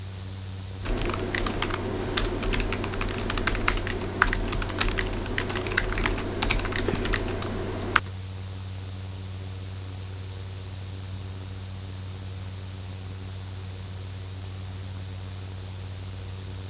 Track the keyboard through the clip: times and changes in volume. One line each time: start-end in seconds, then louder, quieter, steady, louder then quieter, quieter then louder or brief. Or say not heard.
0.8-8.1 steady.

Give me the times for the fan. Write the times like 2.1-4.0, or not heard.
0.0-16.6.